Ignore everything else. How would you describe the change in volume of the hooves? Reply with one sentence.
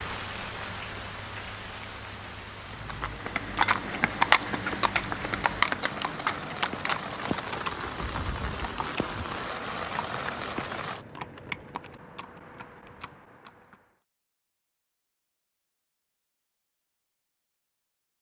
The loudness of the hooves goes down.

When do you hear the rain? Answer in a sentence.
The rain can be heard from 0.0 to 11.1 s.